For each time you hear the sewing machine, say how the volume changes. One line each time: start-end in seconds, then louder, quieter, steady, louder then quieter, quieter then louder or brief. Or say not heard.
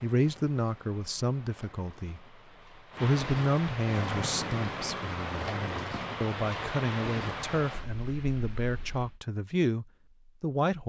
not heard.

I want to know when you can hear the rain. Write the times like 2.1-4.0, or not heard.
0.0-9.2.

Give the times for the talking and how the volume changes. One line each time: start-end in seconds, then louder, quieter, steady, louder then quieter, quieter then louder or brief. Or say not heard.
0.0-2.2 brief
3.0-10.8 quieter then louder.